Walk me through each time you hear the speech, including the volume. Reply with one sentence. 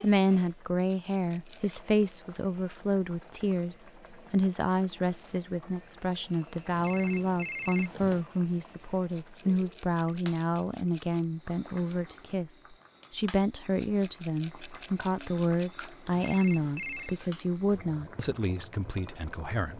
You can hear the speech from 0.0 to 19.7 s, at a steady volume.